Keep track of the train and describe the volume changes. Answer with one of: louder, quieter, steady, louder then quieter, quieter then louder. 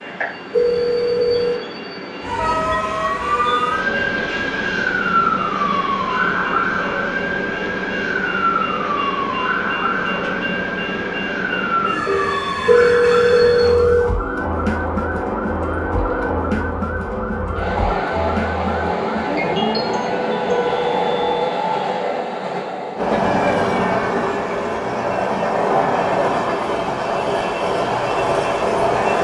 louder.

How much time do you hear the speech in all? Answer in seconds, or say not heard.
not heard.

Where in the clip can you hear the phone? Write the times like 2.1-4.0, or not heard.
0.5-1.6, 12.7-14.2, 20.5-21.5.